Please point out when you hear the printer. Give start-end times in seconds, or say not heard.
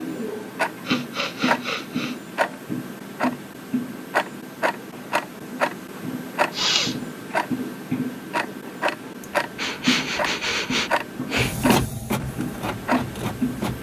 11.3-13.7.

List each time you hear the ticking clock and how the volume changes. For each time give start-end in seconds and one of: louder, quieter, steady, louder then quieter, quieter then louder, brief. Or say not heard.
0.0-13.7 steady.